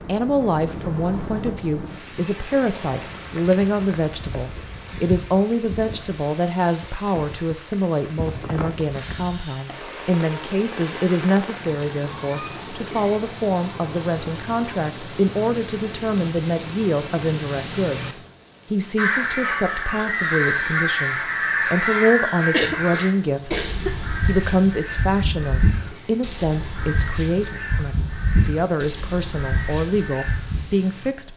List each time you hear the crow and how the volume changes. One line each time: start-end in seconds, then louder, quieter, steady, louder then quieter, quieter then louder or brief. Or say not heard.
18.9-30.6 quieter.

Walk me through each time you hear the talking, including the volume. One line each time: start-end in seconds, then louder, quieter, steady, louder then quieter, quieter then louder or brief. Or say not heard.
0.1-31.3 steady.